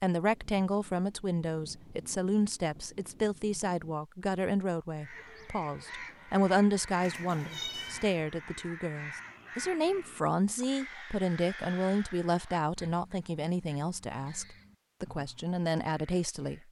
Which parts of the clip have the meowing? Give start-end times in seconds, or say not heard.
7.0-8.1.